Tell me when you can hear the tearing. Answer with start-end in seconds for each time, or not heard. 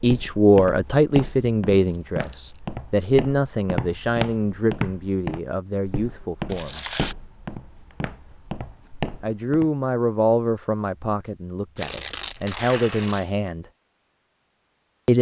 2.0-2.6, 6.5-7.2, 11.8-13.2.